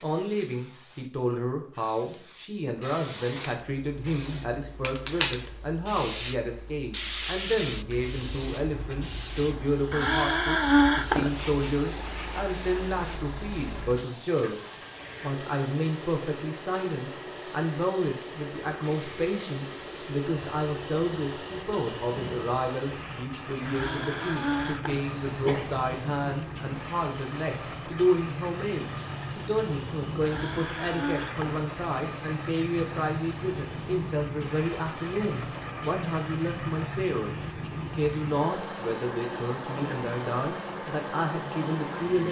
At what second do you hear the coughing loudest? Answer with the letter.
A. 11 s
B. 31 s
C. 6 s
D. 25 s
A.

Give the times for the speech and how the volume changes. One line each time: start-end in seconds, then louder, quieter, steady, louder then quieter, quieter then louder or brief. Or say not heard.
0.0-42.2 steady.